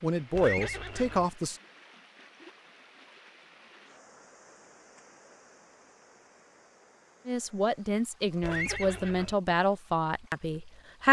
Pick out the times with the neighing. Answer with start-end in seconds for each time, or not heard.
0.3-1.3, 8.4-9.3.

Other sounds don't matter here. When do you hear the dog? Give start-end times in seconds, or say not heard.
not heard.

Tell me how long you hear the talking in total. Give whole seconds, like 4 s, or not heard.
5 s.